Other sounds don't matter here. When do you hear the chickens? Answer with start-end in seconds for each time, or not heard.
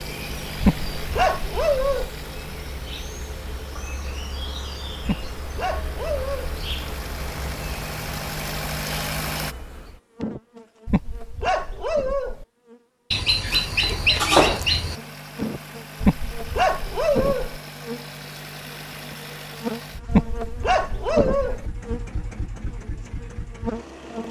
13.1-14.9.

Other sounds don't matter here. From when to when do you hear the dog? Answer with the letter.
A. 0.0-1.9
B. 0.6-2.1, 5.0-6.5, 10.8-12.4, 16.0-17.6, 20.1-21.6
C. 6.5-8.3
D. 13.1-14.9
B.